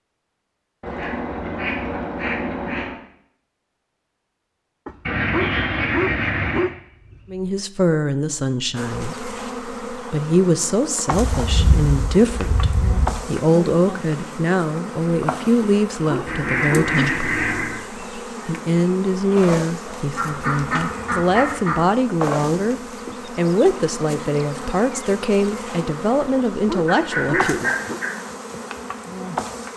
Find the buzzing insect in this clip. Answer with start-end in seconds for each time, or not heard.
8.8-29.7.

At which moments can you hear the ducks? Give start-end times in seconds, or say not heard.
0.8-3.0, 5.0-6.7, 11.1-13.2, 16.2-17.8, 20.1-21.9, 26.9-28.1.